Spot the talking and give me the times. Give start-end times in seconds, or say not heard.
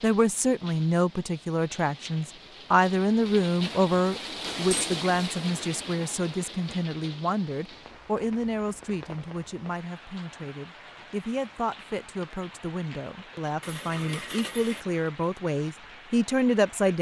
0.0-16.9.